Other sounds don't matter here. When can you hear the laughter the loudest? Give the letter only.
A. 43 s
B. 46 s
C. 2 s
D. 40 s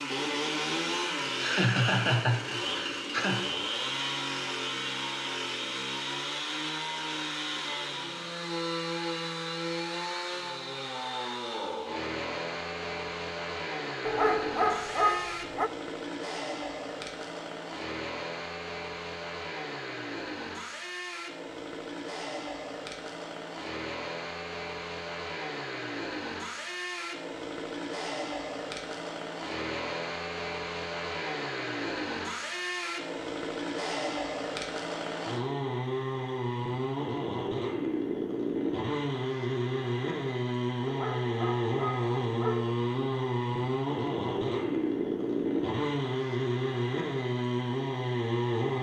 C.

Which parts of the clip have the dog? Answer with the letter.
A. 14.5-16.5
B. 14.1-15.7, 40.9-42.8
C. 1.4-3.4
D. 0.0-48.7
B.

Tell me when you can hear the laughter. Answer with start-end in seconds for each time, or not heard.
1.4-3.4.